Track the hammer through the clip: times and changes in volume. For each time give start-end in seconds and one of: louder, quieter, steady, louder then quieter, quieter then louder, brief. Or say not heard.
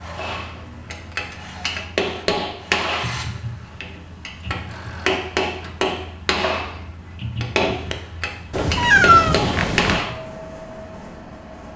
0.1-10.2 steady.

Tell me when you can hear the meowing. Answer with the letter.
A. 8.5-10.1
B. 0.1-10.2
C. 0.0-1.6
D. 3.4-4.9
A.